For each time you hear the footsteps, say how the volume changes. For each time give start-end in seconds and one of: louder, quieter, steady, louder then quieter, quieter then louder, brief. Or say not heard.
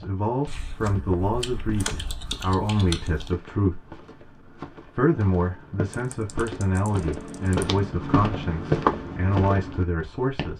0.0-10.5 louder.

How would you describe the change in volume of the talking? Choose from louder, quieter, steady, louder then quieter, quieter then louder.
steady.